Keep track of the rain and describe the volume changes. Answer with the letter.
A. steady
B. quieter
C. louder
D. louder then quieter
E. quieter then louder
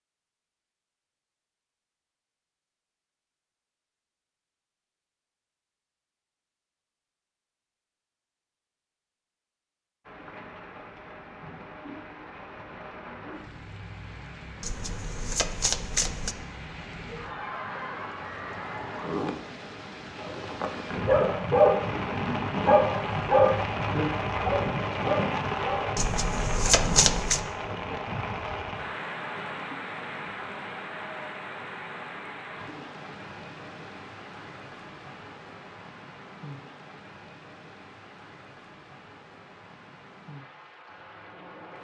D.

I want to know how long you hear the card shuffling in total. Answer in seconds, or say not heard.
3 s.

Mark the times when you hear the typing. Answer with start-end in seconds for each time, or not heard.
not heard.